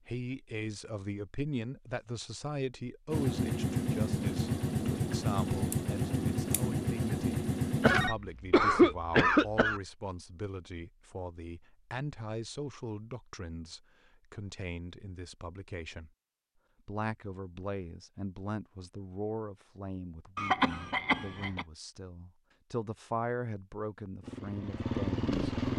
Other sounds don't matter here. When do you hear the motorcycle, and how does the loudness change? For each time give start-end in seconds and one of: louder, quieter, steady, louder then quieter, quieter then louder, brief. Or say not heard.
3.1-8.1 steady
24.2-25.7 brief.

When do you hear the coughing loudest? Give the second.
9 s.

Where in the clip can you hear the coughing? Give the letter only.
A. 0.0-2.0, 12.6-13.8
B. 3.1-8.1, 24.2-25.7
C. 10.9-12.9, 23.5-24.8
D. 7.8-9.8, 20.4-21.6
D.